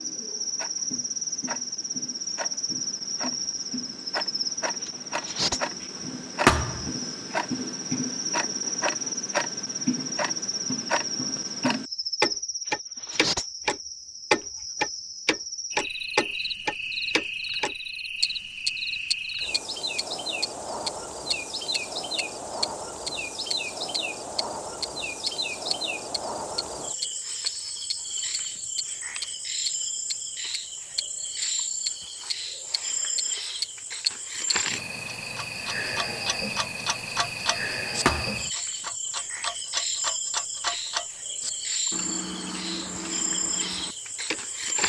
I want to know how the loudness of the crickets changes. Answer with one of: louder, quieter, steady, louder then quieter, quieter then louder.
steady.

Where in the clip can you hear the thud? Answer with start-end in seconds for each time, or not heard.
6.5-6.9, 38.0-38.5.